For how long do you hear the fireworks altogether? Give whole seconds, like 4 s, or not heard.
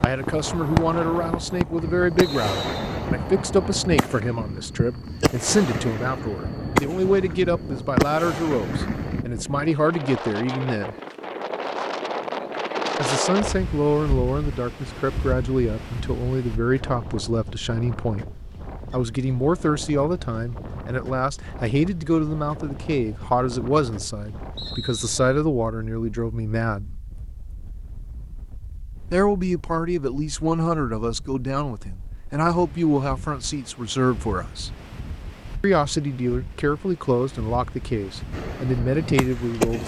11 s.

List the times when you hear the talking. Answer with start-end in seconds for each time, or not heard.
0.0-10.9, 12.9-18.3, 18.9-27.0, 29.1-34.7, 35.6-39.8.